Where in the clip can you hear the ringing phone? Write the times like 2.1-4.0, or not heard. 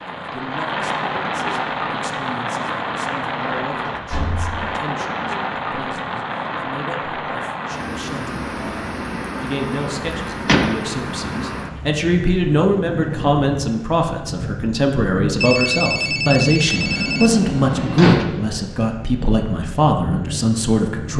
15.4-17.3.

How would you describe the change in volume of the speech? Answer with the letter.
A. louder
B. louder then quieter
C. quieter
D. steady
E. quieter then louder
A.